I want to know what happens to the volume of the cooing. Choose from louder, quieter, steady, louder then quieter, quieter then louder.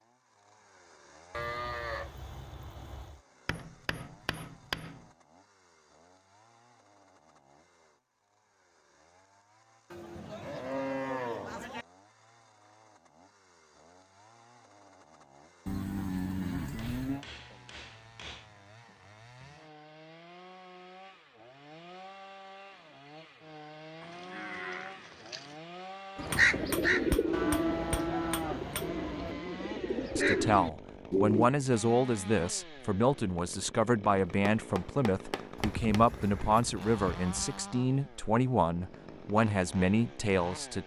quieter then louder.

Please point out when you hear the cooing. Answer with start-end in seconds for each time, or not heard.
26.1-31.5.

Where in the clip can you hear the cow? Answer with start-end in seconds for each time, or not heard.
1.3-3.2, 9.9-11.8, 15.7-17.2, 24.0-25.6, 27.3-29.4, 35.5-37.6.